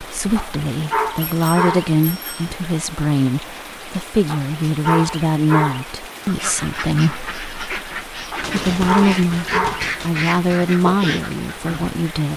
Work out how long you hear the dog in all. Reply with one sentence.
The dog can be heard for 5 seconds in total.